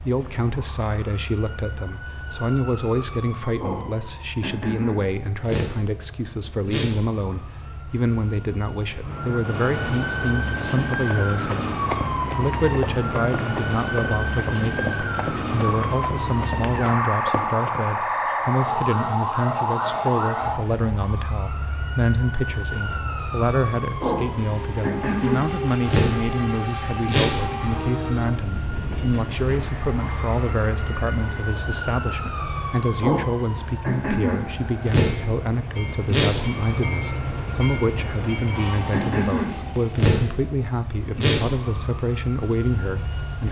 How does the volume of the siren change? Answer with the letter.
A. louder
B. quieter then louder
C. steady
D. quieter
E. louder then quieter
A.